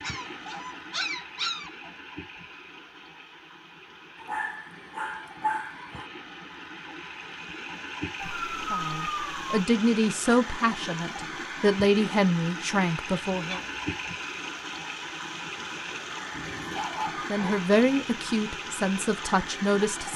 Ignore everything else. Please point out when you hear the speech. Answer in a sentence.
The speech can be heard from 8.6 to 13.6 s and from 17.3 to 20.1 s.